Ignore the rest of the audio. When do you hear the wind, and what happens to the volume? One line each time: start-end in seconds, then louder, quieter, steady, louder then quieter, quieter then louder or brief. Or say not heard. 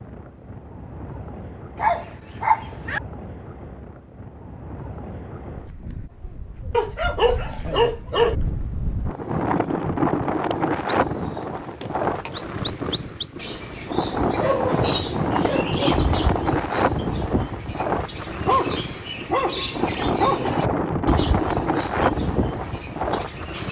0.0-23.6 louder.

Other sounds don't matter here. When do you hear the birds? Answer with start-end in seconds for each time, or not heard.
10.7-23.6.